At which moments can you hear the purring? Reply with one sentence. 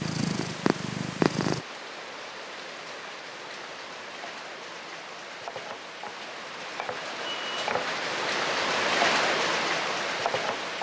The purring can be heard from 0.0 to 1.6 s.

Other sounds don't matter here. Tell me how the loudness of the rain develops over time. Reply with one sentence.
The volume of the rain goes up.